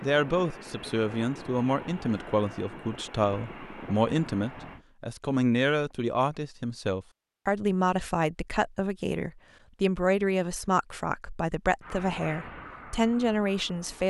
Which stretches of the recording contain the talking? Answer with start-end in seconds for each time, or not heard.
0.0-14.0.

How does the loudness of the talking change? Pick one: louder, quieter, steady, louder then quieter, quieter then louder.
steady.